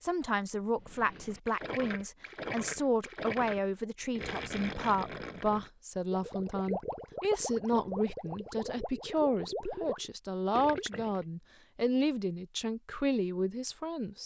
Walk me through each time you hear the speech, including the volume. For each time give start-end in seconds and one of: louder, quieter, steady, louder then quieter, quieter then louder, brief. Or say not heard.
0.0-14.2 steady.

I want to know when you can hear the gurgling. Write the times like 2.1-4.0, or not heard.
0.8-11.2.